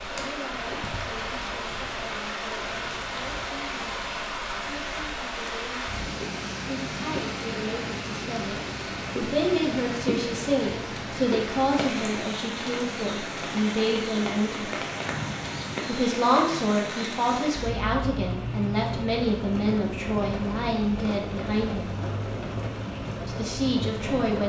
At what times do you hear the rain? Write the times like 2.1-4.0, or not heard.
0.0-24.4.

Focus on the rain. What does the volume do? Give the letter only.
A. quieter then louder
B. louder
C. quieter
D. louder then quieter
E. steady
E.